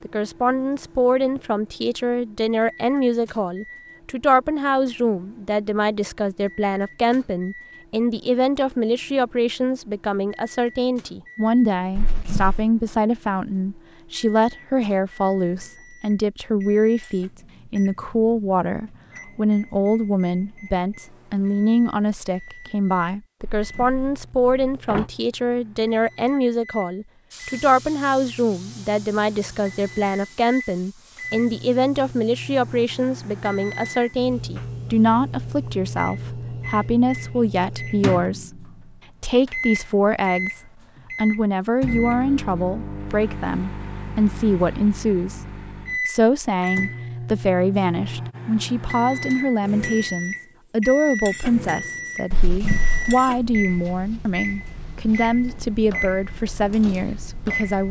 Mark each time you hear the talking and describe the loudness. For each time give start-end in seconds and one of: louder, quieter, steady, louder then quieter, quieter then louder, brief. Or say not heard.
0.0-57.8 steady.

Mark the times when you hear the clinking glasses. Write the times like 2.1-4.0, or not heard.
not heard.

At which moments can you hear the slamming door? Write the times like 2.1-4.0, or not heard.
11.9-12.7, 23.4-25.1, 52.3-53.1.